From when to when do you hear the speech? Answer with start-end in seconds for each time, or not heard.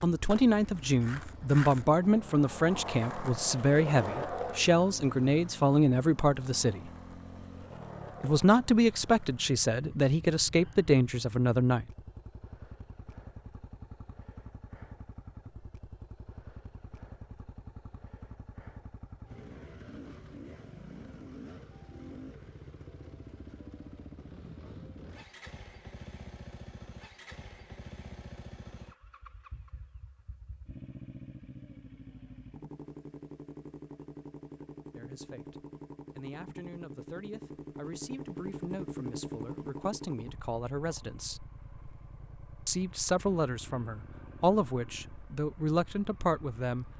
0.0-6.9, 8.2-11.8, 35.0-41.5, 42.6-46.9.